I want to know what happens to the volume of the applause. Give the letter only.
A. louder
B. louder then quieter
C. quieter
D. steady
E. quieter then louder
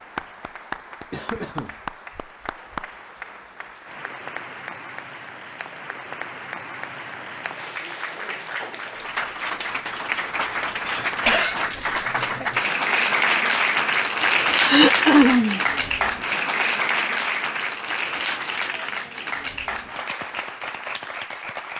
B.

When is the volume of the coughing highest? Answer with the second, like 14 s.
15 s.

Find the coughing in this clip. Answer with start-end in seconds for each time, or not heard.
1.1-1.8, 10.8-11.7, 14.7-15.6.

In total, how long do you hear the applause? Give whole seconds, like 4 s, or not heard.
22 s.